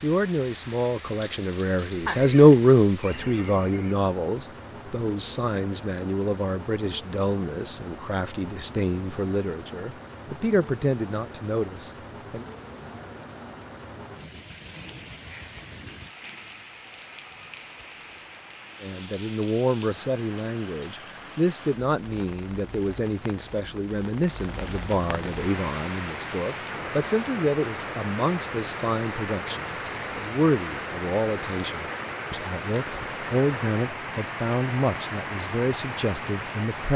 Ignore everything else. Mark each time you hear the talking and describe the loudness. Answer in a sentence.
You can hear the talking from 0.0 to 12.4 s, getting quieter; and from 18.8 to 36.9 s, at a steady volume.